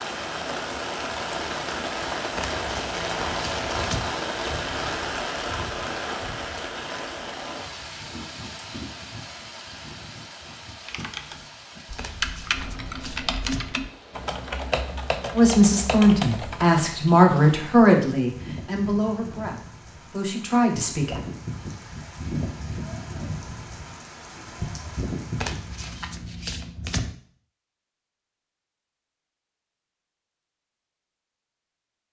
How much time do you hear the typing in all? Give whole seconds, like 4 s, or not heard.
6 s.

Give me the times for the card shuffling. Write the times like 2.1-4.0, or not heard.
2.4-4.1, 11.9-13.7, 25.4-27.1.